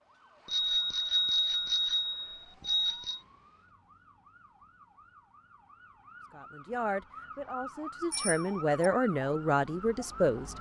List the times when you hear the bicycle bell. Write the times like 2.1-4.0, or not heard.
0.5-3.2, 8.1-8.9.